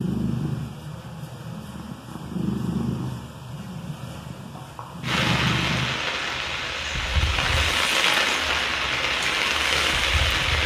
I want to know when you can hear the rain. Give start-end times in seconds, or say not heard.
5.0-10.6.